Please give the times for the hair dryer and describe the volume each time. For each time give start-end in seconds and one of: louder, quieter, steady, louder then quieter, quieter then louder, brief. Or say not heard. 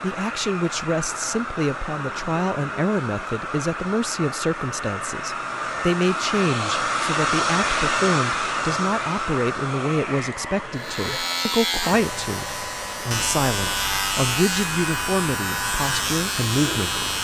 0.0-17.1 louder then quieter.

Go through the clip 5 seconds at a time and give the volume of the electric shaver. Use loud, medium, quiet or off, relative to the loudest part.
off, off, loud, loud.